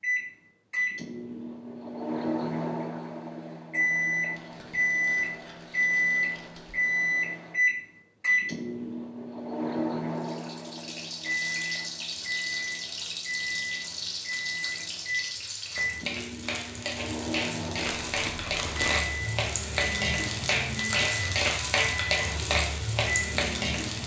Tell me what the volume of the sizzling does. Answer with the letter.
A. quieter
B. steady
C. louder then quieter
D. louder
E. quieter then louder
D.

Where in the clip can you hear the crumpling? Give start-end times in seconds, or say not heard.
4.3-7.0, 17.8-19.1.